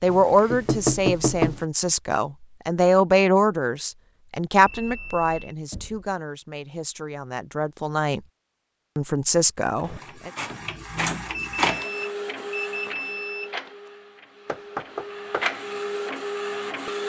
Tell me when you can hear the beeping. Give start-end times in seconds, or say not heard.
4.7-5.5, 11.3-13.5.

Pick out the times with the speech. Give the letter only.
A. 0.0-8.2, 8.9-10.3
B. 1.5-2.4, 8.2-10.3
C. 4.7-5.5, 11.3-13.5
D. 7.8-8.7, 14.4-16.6
A.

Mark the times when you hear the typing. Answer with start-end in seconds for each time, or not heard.
not heard.